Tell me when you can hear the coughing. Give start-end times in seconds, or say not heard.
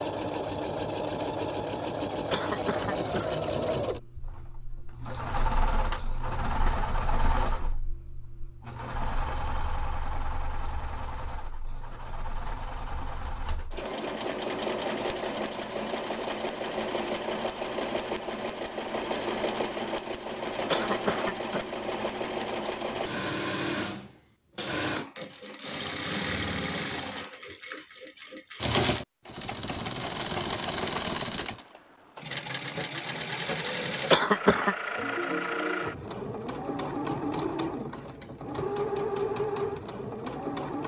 2.3-3.4, 20.7-21.6, 34.1-34.8.